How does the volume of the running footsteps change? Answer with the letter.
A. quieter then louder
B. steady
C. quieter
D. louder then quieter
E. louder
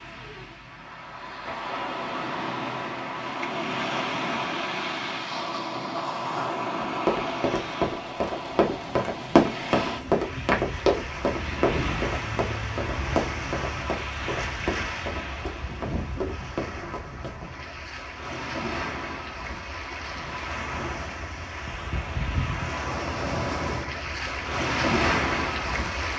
C.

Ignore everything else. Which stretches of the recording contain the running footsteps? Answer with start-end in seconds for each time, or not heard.
7.0-17.5.